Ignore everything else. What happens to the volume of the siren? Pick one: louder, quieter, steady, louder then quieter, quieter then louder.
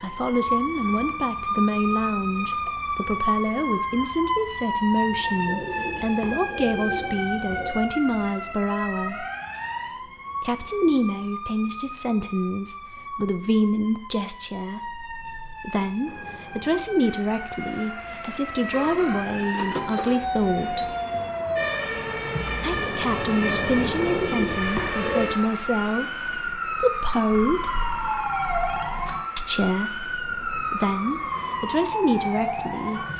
quieter then louder.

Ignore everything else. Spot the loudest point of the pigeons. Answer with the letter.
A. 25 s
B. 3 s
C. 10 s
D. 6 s
A.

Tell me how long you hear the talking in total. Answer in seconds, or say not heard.
29 s.